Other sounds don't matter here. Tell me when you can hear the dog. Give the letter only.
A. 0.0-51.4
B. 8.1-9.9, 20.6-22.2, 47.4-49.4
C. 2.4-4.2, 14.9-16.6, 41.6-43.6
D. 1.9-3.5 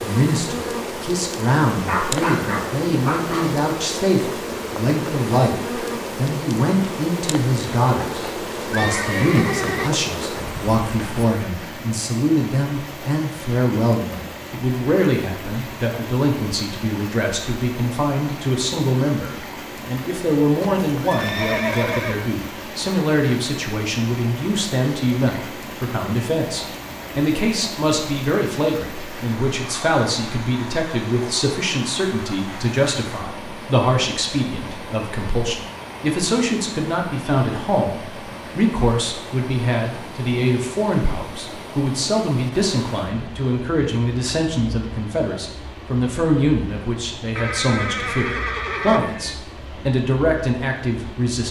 D.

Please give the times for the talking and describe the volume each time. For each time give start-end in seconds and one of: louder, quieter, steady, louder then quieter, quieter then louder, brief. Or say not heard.
0.0-51.4 steady.